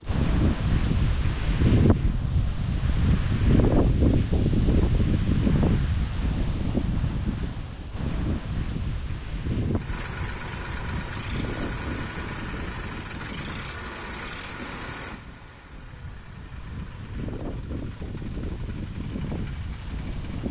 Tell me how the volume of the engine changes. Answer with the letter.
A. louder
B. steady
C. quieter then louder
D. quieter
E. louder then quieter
D.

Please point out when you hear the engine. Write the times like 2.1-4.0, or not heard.
9.7-20.4.